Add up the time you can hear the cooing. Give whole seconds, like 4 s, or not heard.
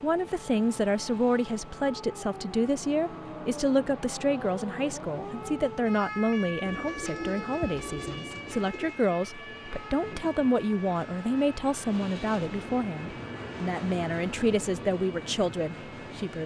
2 s.